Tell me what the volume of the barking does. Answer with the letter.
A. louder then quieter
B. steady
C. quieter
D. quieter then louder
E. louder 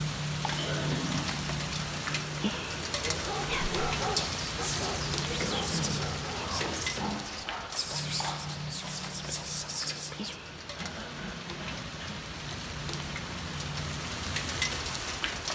C.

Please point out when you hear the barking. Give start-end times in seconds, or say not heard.
3.0-8.6.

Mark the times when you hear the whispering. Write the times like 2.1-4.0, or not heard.
3.5-10.3.